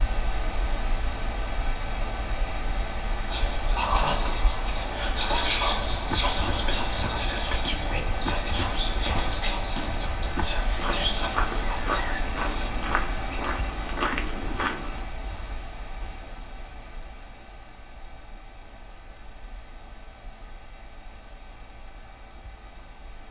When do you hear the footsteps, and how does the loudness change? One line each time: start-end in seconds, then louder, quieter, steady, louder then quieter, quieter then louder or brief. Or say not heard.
5.9-15.1 louder.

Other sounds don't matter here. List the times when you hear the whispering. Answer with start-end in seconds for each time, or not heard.
3.2-12.7.